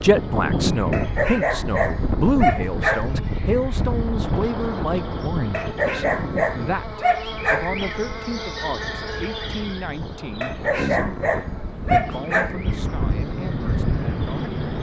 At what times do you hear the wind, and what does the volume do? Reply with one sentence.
You can hear the wind from 0.0 to 14.7 s, getting quieter then louder.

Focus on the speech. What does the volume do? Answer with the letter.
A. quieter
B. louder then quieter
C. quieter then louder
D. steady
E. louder
A.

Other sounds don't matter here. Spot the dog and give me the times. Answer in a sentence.
The dog can be heard from 0.9 to 3.2 s, from 5.5 to 7.7 s and from 10.4 to 12.6 s.